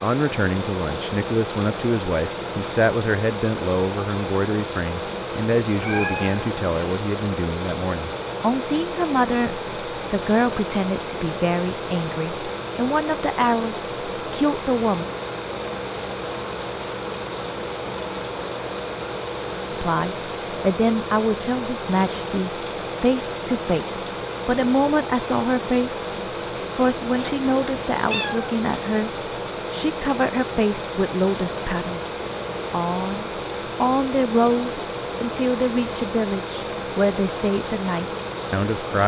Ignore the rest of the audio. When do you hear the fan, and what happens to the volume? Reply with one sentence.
The fan can be heard from 0.0 to 39.0 s, at a steady volume.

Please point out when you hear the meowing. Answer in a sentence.
You can hear the meowing from 5.8 to 6.9 s and from 27.1 to 28.6 s.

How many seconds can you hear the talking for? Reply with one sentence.
You can hear the talking for 33 seconds altogether.